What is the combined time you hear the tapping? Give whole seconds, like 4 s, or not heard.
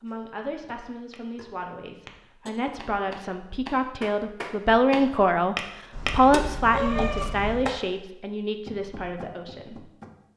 10 s.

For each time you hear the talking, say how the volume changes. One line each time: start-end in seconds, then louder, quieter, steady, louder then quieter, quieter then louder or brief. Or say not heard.
0.0-9.9 louder then quieter.